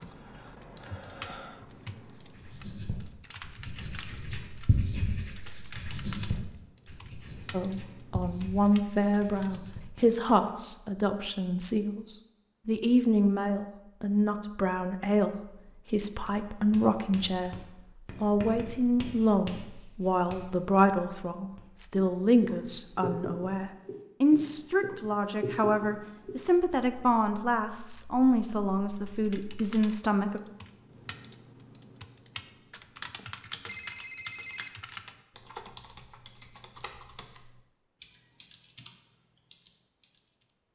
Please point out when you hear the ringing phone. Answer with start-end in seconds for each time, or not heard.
33.6-34.8.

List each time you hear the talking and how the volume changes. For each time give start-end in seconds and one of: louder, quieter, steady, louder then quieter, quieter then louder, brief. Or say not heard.
7.5-30.4 steady.